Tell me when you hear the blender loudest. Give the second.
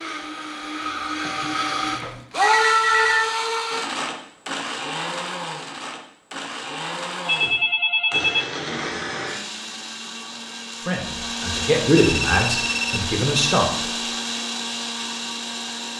3 s.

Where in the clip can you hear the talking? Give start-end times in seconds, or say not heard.
10.8-13.9.